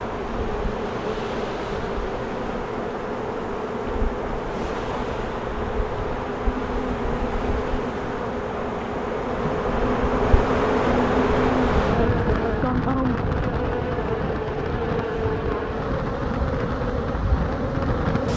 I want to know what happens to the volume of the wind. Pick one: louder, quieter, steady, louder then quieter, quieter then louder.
louder.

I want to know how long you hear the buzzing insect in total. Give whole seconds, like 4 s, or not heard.
18 s.